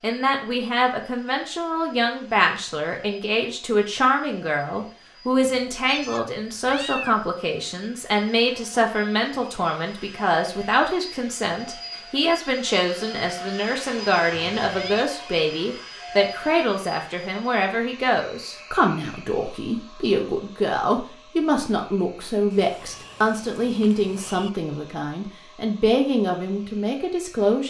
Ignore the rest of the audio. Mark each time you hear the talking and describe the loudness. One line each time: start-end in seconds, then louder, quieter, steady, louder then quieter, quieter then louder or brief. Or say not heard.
0.0-27.6 steady.